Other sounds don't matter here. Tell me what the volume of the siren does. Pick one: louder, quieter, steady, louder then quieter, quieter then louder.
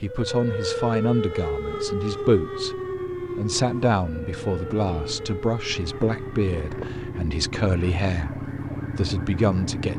quieter.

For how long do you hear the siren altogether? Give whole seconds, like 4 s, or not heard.
10 s.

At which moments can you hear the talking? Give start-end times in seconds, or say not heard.
0.0-9.9.